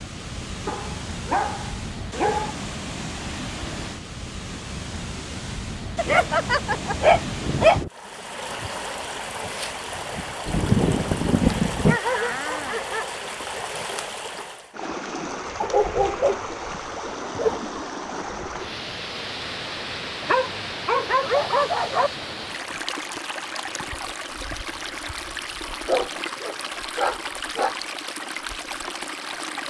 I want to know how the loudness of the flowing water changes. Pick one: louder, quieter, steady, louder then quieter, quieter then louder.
steady.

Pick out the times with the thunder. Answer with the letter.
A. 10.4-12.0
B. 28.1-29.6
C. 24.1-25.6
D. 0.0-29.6
A.